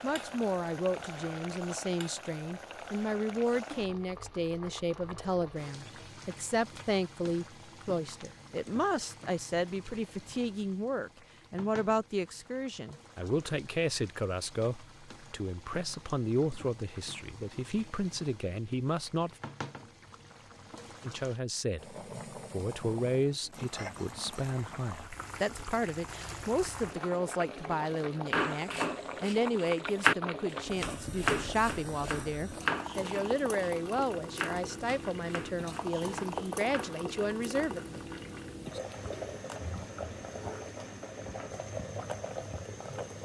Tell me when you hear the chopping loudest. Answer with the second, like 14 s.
30 s.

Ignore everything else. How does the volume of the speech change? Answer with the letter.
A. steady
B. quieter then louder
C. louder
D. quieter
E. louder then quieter
A.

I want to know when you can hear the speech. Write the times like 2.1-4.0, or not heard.
0.0-19.4, 21.0-38.0.